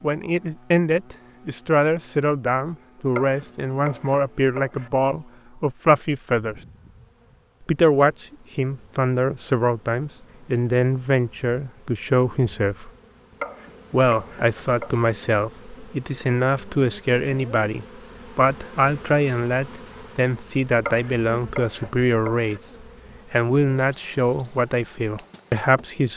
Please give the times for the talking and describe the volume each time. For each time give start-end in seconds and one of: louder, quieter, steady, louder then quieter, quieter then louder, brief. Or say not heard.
0.0-6.6 steady
7.7-12.9 steady
13.9-22.6 steady
23.3-26.1 brief.